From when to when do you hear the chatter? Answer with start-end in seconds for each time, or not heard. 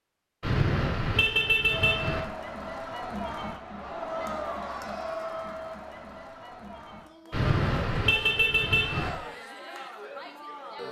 1.6-10.8.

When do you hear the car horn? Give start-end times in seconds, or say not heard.
0.4-2.2, 7.3-9.1.